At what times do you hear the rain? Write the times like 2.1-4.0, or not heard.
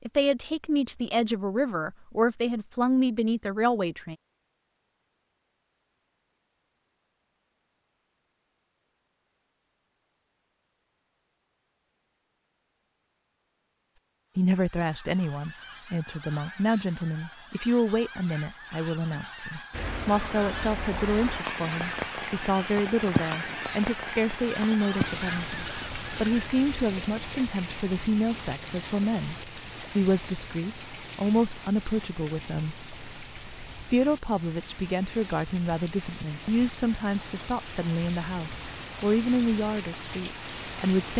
19.7-41.1.